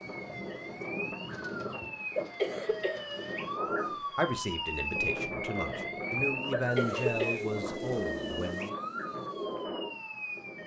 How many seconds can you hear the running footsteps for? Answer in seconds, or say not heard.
not heard.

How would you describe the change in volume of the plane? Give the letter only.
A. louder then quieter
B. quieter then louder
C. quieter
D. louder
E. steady
E.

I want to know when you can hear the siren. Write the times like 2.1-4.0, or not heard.
0.0-10.6.